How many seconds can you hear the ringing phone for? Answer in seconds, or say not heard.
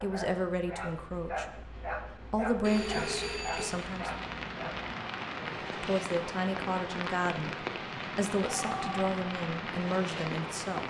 2 s.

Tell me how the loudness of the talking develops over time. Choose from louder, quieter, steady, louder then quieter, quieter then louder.
steady.